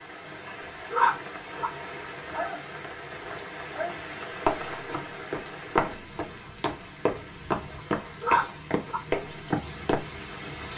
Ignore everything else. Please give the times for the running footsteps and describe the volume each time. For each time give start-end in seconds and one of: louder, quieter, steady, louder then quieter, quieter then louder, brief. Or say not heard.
4.5-10.1 quieter then louder.